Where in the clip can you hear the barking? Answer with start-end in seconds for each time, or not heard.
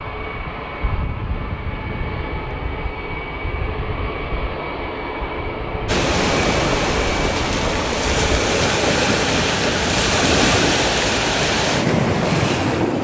not heard.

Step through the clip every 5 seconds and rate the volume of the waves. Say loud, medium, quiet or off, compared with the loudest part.
off, loud, loud.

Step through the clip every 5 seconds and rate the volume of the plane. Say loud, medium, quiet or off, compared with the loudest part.
loud, loud, off.